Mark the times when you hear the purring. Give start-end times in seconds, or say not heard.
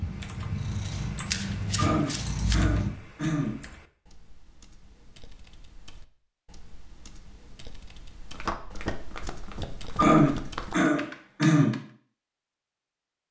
0.0-2.9.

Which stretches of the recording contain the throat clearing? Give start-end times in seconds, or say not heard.
1.8-3.6, 9.9-11.8.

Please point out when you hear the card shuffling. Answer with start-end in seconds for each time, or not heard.
0.8-2.6, 8.3-10.8.